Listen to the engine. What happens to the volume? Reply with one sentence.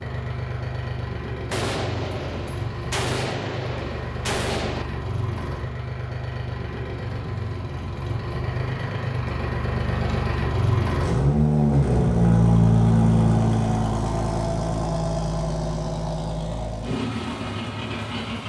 The volume of the engine goes up, then down.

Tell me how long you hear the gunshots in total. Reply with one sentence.
The gunshots can be heard for 3 seconds in total.